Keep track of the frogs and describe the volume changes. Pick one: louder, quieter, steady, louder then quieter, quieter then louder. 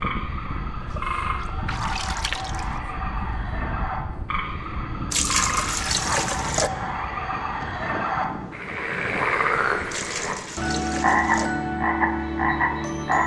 louder.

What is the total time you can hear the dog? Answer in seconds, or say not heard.
not heard.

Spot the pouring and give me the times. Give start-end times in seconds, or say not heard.
0.9-2.8, 5.1-6.7, 9.9-11.5.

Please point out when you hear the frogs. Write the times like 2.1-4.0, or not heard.
0.0-13.2.